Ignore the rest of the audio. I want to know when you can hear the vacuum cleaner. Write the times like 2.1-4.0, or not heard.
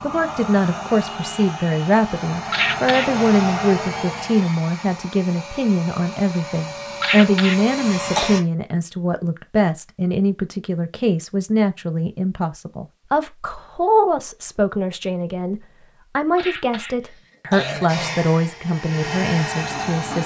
0.0-8.4, 17.9-20.2.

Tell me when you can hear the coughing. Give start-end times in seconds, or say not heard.
2.5-3.2, 7.0-8.3, 16.4-18.1.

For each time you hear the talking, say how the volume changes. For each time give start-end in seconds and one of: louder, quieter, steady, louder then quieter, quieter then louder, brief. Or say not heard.
0.0-20.2 steady.